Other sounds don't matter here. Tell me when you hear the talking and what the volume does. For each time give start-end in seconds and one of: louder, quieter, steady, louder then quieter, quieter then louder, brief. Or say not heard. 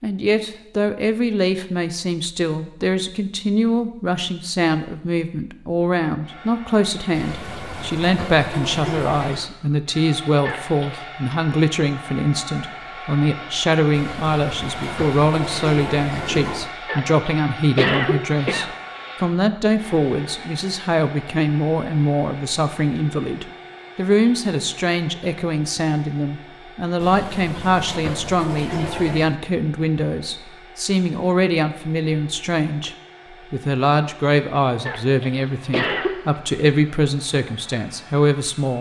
0.0-38.7 steady.